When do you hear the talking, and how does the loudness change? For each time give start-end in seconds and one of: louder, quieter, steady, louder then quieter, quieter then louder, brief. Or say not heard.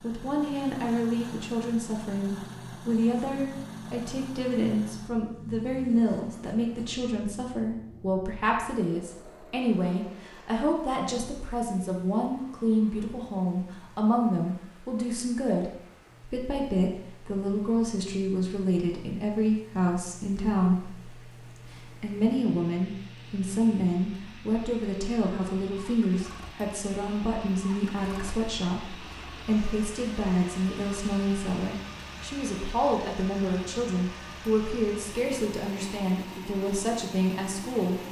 0.0-38.0 steady.